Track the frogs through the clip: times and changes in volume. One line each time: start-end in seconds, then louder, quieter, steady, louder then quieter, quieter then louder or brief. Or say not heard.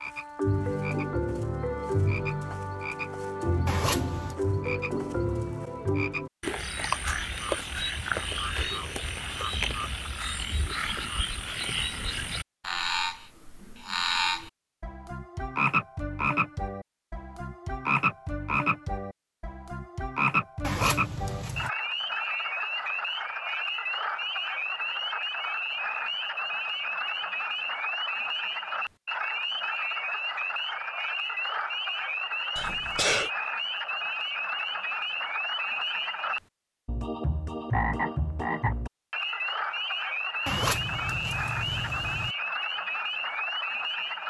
0.0-44.2 steady.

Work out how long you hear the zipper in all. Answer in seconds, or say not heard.
4 s.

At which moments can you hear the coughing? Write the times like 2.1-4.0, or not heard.
32.5-33.3.